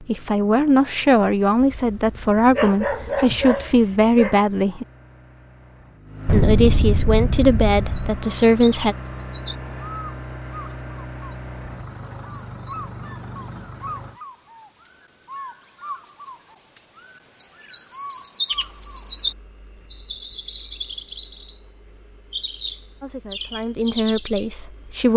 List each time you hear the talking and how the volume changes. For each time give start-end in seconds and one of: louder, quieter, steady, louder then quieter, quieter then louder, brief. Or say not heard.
0.1-4.8 steady
6.3-8.9 brief
23.0-25.1 brief.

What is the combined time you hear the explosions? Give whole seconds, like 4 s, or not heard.
2 s.